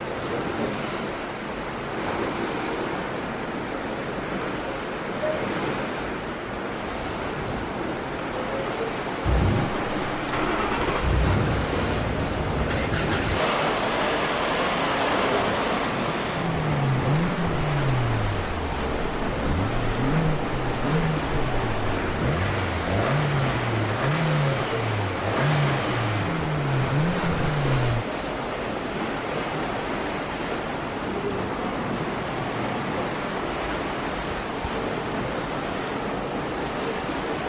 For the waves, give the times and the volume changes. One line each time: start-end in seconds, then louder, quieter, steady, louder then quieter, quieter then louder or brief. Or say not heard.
0.0-37.4 steady.